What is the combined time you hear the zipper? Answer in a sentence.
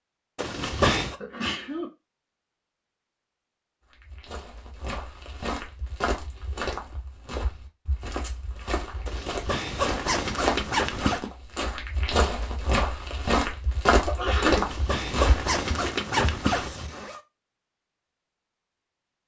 You can hear the zipper for 6 seconds altogether.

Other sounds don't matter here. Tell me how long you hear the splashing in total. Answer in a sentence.
You can't hear the splashing here.